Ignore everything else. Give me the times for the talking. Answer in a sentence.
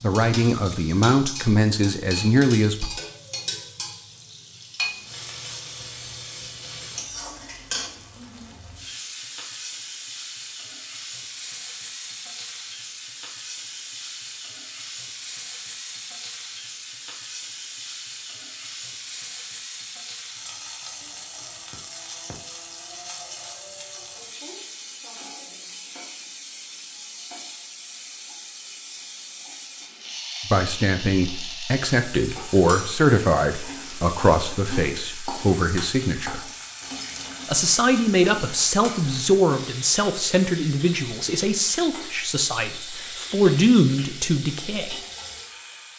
You can hear the talking from 0.0 to 2.9 s, from 30.5 to 36.4 s and from 37.5 to 45.0 s.